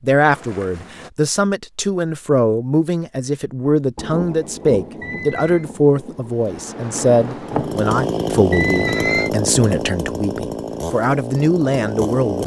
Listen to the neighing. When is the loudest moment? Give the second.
9 s.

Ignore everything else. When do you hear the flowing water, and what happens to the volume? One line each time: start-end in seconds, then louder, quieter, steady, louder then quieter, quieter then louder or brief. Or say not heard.
not heard.